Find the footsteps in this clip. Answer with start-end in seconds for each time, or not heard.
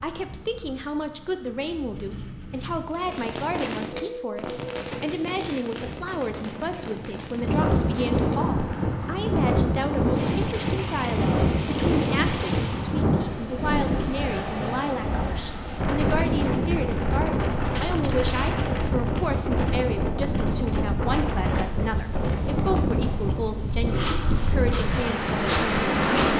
23.6-26.3.